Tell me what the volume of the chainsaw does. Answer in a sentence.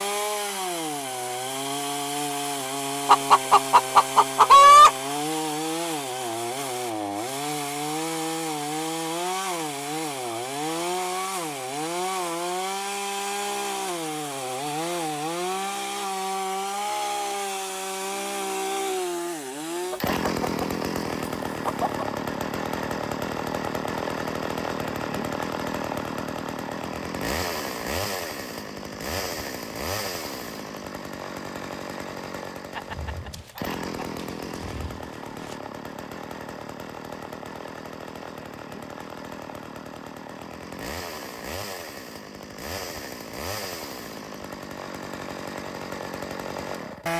The loudness of the chainsaw goes down.